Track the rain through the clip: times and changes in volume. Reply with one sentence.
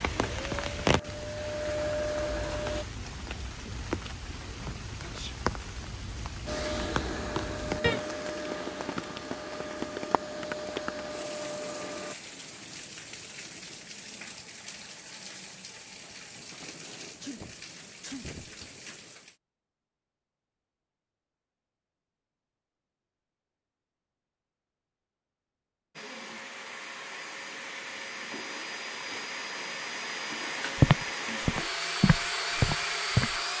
You can hear the rain from 0.0 to 19.4 s, getting quieter.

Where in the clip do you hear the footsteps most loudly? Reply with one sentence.
The loudest moment of the footsteps is at 31 seconds.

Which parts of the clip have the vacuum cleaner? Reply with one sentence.
You can hear the vacuum cleaner from 0.0 to 2.9 s, from 6.5 to 12.2 s and from 25.9 to 33.5 s.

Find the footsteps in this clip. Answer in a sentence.
You can hear the footsteps from 30.8 to 33.4 s.